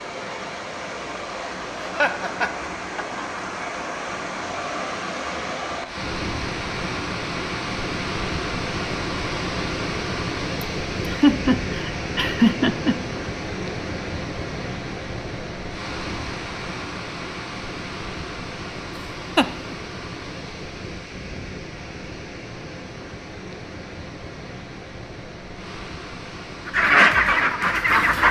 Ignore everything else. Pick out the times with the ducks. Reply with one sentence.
You can hear the ducks from 26.6 to 28.2 s.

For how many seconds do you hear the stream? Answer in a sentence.
You can hear the stream for 28 seconds altogether.